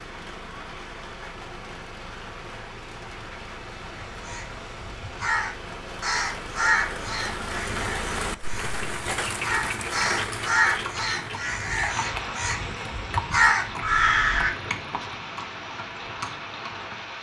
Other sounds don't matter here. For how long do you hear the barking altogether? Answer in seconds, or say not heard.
not heard.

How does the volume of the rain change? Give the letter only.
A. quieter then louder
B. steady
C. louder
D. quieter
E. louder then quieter
E.